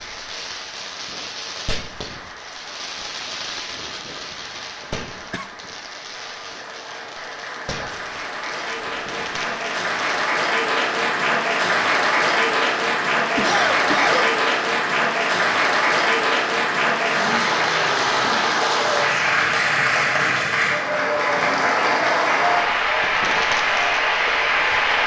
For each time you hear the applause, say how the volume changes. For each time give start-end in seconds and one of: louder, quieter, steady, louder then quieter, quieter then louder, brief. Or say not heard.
0.0-25.0 louder.